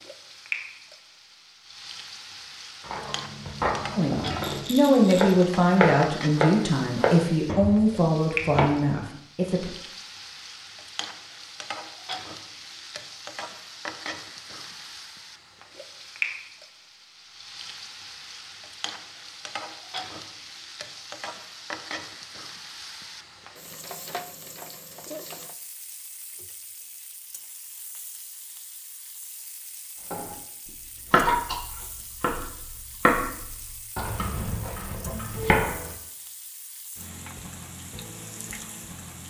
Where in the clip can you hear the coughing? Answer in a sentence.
You can hear the coughing from 31.1 to 31.6 s.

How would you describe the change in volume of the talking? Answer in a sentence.
The loudness of the talking goes down.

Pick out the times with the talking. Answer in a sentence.
You can hear the talking from 4.0 to 9.7 s.